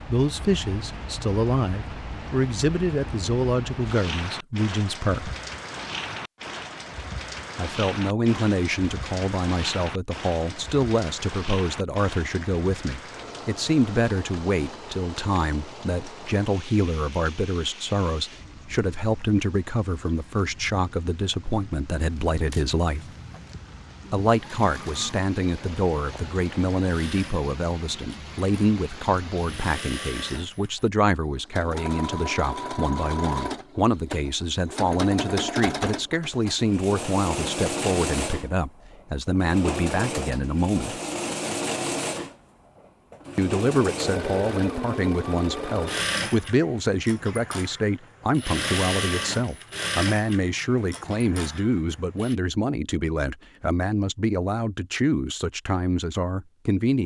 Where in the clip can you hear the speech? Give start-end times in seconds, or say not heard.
0.1-5.3, 7.5-23.1, 24.1-41.0, 43.4-57.0.